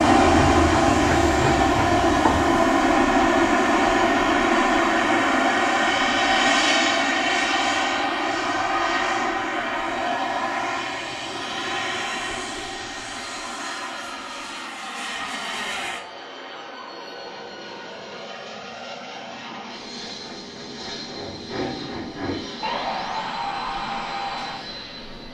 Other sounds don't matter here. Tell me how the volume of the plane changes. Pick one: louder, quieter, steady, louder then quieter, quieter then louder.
quieter.